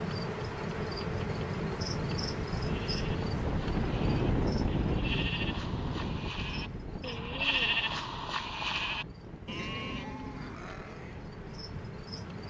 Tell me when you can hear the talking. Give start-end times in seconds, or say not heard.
not heard.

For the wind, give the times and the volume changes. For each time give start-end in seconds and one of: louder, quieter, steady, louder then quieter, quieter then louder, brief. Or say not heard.
0.2-12.4 louder then quieter.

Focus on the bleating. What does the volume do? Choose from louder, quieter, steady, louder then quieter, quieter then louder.
louder then quieter.